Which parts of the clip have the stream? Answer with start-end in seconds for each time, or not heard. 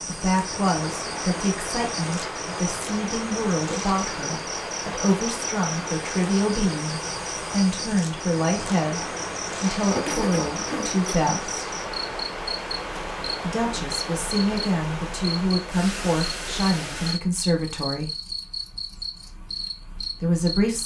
0.0-17.2.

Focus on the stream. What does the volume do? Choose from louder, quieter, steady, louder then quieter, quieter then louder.
steady.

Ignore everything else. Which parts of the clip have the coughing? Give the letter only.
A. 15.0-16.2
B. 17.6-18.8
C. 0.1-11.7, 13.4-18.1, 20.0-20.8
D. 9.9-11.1
D.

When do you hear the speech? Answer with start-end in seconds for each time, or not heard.
0.1-11.7, 13.4-18.1, 20.0-20.8.